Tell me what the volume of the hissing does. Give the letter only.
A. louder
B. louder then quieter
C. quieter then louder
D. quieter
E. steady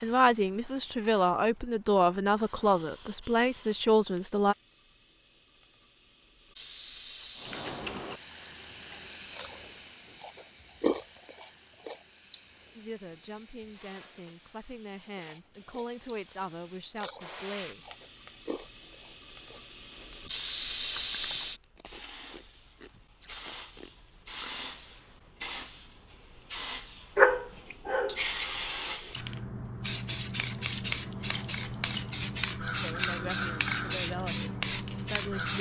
A.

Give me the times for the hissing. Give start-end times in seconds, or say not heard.
0.0-35.5.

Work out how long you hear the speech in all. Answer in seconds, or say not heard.
12 s.